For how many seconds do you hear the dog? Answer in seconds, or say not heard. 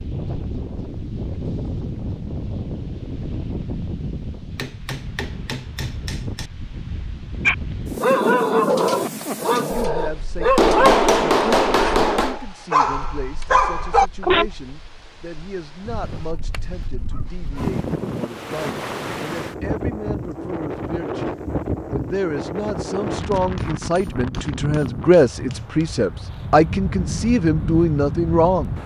7 s.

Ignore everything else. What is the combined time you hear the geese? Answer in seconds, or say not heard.
2 s.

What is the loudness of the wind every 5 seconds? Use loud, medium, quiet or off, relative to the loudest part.
loud, loud, quiet, loud, loud, loud.